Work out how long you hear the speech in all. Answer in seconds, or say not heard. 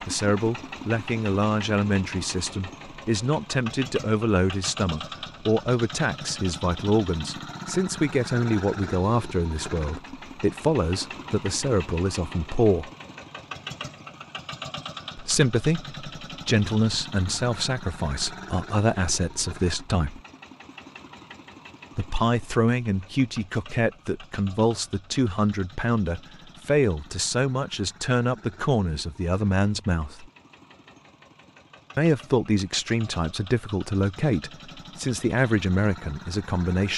31 s.